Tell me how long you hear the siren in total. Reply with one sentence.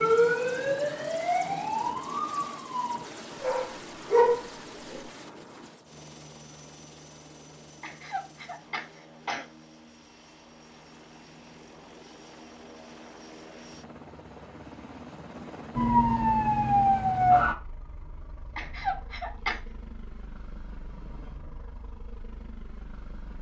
The siren can be heard for 5 seconds in total.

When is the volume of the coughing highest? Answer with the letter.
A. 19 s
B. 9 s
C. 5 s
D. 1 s
A.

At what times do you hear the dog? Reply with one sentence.
You can hear the dog from 3.4 to 5.0 s.